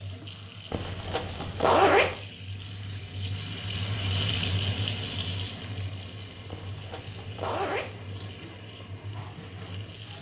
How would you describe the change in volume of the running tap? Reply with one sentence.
The volume of the running tap goes up, then down.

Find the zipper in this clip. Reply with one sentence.
The zipper can be heard from 0.7 to 2.1 s and from 6.5 to 8.0 s.